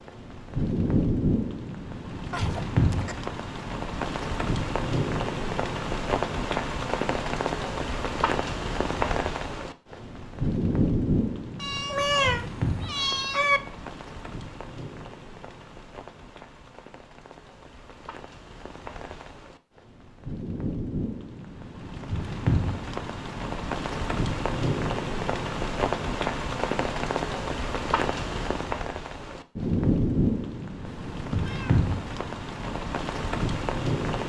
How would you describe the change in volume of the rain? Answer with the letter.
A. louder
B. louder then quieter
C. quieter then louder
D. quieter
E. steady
C.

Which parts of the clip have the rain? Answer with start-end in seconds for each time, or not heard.
0.0-34.2.